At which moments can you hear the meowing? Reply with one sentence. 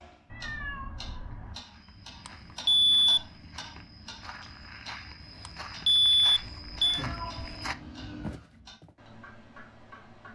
The meowing can be heard from 0.3 to 1.6 s and from 6.4 to 8.3 s.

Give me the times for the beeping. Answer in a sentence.
You can hear the beeping from 2.2 to 3.2 s and from 5.5 to 7.0 s.